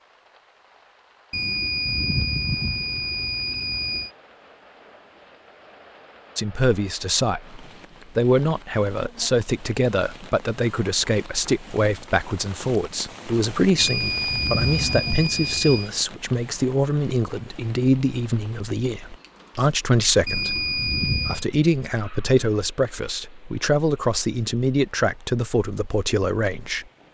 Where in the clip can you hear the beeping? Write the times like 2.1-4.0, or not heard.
1.3-4.1, 13.8-15.9, 20.2-21.4.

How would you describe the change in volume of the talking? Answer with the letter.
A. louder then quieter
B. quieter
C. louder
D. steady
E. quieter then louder
D.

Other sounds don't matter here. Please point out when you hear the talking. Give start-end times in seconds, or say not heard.
6.3-26.9.